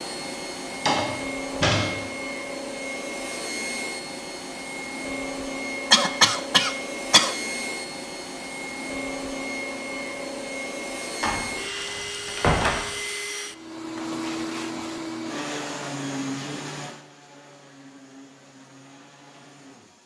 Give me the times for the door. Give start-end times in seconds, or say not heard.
0.7-1.9, 11.2-12.8.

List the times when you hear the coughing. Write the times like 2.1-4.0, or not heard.
5.9-7.3.